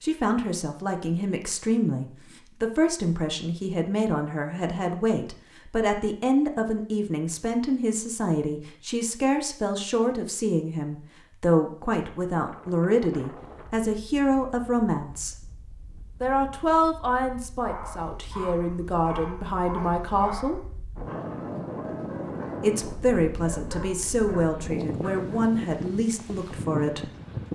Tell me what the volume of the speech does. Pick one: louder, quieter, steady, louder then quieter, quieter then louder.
steady.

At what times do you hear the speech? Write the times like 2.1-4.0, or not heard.
0.0-15.3, 16.2-20.6, 22.6-27.1.